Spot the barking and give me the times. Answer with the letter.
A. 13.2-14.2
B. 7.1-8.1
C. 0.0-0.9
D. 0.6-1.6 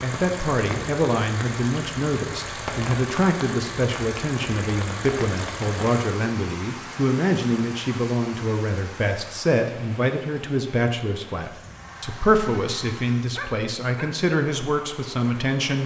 A.